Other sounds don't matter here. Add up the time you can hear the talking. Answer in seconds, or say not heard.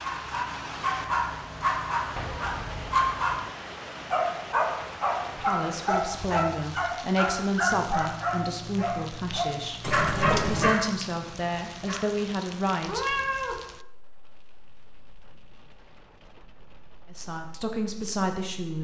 9 s.